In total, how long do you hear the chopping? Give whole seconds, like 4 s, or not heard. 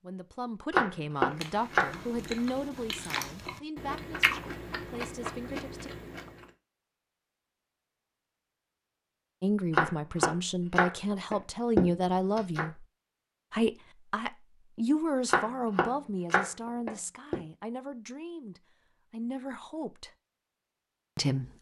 6 s.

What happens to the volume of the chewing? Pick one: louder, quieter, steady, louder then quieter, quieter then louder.
louder then quieter.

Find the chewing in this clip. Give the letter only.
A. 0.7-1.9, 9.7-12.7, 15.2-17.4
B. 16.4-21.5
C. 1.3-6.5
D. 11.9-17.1
C.